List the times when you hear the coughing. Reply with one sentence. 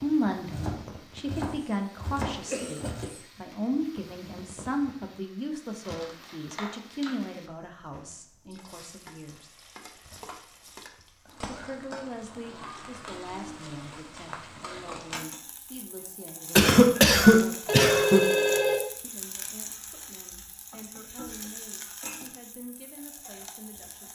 You can hear the coughing from 1.6 to 3.5 s and from 16.6 to 18.2 s.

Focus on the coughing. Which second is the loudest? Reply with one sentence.
The loudest moment of the coughing is at 17 seconds.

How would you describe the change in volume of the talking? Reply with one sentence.
The loudness of the talking goes down.